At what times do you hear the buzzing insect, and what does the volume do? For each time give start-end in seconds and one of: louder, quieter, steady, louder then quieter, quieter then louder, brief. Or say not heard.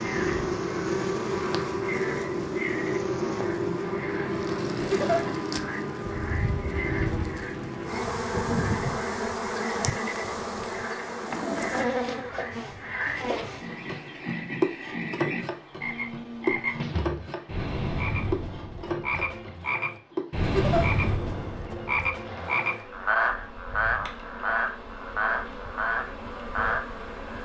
0.0-27.4 quieter.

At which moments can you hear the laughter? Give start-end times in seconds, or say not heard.
4.8-5.2, 20.4-20.9.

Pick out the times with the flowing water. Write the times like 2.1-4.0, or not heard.
not heard.